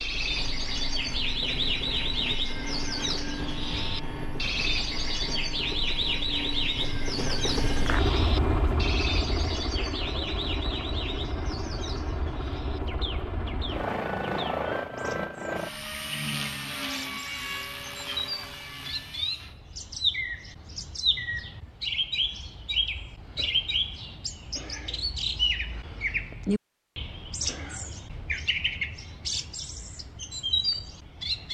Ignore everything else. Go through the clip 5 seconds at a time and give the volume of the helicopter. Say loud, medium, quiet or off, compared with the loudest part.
medium, loud, loud, loud, off, off, off.